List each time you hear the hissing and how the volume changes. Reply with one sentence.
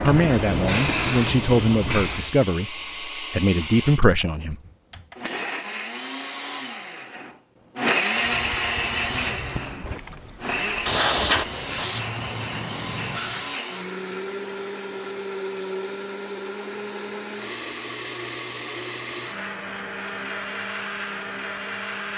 The hissing can be heard briefly from 0.0 to 2.4 s; and from 8.1 to 13.6 s, getting louder then quieter.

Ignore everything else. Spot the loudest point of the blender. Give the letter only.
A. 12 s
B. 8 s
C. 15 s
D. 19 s
B.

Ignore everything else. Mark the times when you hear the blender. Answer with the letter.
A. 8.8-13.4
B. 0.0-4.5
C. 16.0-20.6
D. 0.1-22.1
D.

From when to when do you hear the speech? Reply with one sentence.
The speech can be heard from 0.0 to 4.5 s.